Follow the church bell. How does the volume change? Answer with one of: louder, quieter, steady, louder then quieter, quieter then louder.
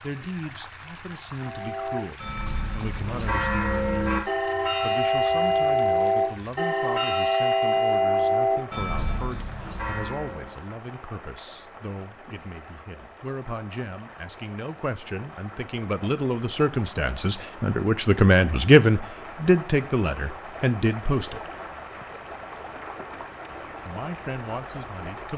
louder then quieter.